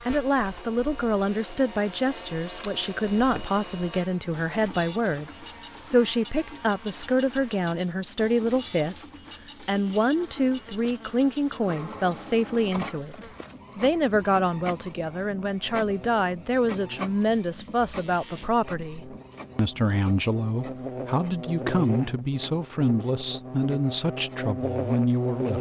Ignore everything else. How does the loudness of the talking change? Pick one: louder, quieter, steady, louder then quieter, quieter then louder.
steady.